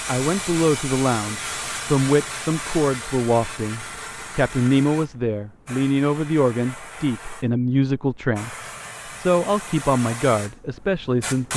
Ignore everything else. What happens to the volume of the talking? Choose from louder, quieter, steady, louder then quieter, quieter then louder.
steady.